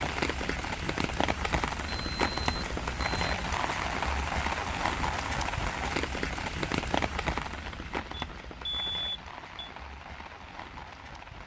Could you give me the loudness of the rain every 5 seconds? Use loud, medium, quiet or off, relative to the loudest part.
loud, loud, quiet.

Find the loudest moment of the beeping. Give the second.
9 s.